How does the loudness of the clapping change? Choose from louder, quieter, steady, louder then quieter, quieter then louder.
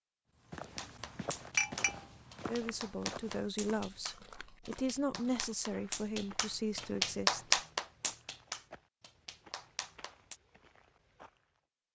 louder then quieter.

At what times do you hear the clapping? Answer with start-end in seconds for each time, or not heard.
0.8-10.4.